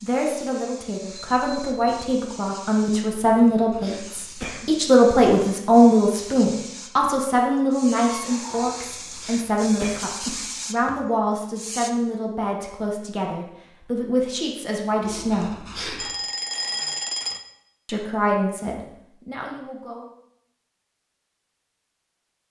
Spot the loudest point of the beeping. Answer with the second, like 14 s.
17 s.